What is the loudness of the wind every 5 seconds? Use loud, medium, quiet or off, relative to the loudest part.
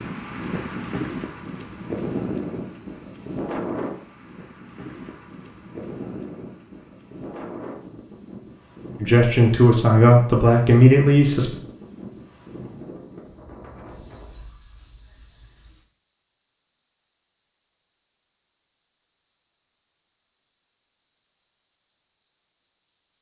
loud, medium, medium, off, off.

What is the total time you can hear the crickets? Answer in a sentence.
The crickets can be heard for 23 seconds in total.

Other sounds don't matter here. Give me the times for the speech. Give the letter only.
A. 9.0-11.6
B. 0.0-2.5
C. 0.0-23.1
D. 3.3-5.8
A.